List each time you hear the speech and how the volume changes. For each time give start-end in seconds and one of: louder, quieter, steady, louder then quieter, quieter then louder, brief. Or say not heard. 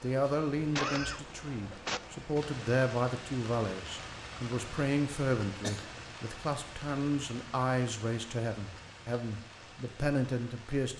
0.0-10.9 steady.